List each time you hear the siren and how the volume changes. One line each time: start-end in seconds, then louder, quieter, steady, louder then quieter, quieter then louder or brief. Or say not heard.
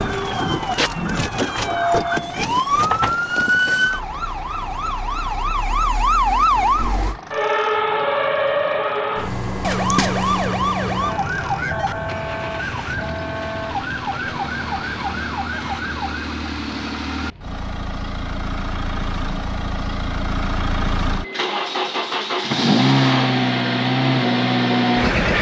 0.0-16.4 quieter.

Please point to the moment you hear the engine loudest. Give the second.
23 s.